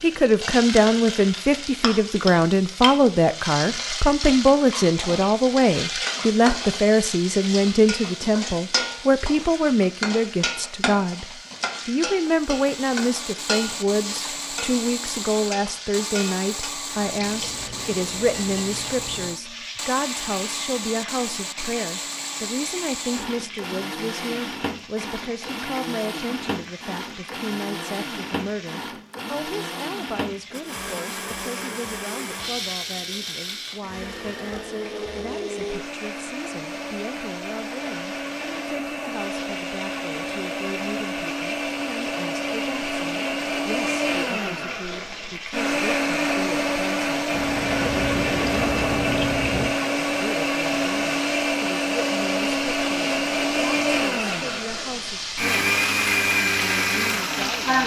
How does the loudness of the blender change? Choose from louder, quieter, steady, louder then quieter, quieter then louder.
louder.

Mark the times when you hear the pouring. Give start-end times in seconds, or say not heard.
16.9-19.3, 47.3-49.8.